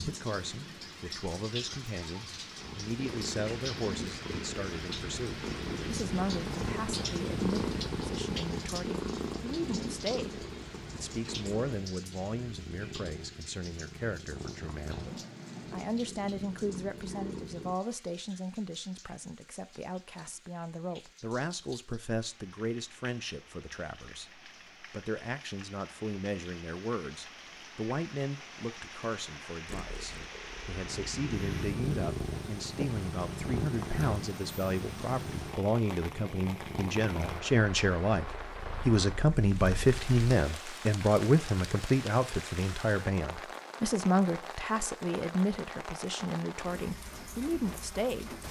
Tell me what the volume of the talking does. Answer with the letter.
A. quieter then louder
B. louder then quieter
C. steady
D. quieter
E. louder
E.